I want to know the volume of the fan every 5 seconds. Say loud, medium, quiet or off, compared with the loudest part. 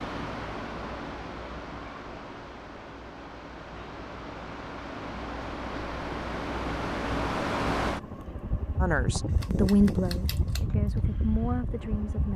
medium, loud, loud.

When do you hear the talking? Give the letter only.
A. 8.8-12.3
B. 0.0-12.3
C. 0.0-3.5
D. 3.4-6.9
A.